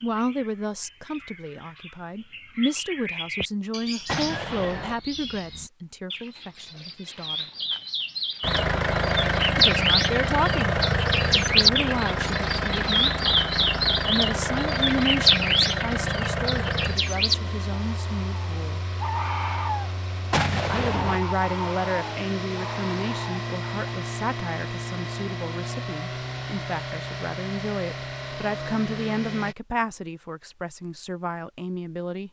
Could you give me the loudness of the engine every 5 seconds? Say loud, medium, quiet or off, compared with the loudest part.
off, loud, loud, medium, medium, medium, off.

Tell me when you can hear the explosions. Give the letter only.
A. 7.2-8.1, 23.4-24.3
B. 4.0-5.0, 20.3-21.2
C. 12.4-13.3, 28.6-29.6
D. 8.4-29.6
B.